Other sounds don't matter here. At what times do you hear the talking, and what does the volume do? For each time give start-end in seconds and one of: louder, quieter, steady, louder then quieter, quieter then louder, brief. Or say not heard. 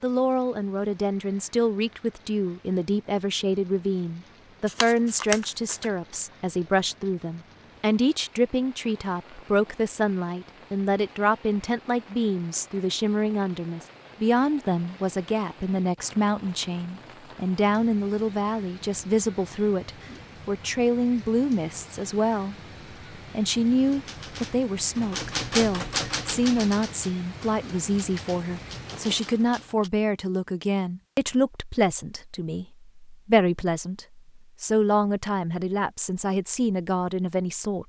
0.0-22.6 steady
23.3-37.8 steady.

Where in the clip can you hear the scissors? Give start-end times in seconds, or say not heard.
4.7-5.9.